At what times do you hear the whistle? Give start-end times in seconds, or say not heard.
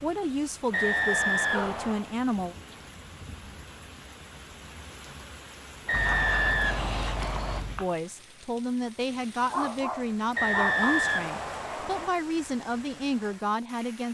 0.7-2.1, 5.8-7.6, 10.3-12.1.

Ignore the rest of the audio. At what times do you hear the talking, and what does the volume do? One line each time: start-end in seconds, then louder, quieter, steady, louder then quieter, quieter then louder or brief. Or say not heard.
0.0-2.5 brief
7.8-14.0 steady.